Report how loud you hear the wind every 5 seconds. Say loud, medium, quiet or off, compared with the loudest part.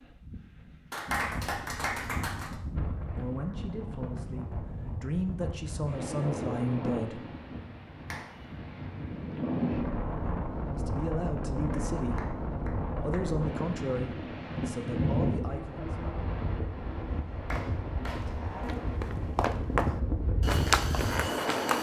medium, loud, loud, loud, loud.